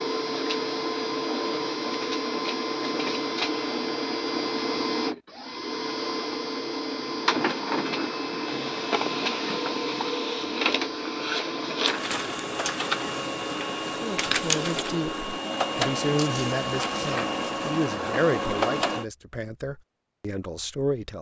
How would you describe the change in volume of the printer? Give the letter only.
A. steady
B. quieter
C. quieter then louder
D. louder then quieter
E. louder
A.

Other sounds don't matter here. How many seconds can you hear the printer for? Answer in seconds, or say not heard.
19 s.